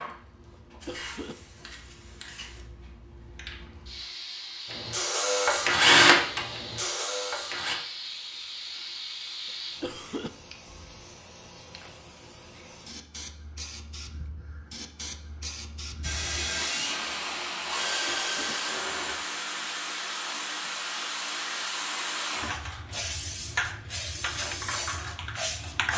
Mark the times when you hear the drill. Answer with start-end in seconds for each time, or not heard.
4.7-7.8, 16.0-19.1.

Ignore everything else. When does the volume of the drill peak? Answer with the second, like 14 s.
6 s.